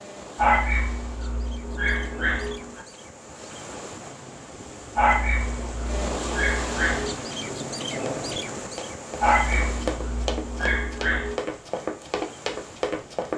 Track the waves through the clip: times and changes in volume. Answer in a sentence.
You can hear the waves from 0.0 to 13.3 s, getting louder then quieter.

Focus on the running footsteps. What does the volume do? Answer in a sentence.
The loudness of the running footsteps goes up.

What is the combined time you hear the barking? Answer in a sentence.
The barking can be heard for 7 seconds in total.